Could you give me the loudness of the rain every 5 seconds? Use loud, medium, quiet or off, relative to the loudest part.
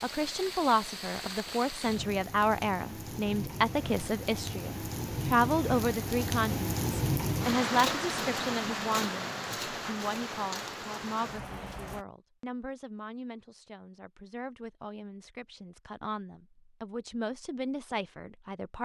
medium, loud, medium, off.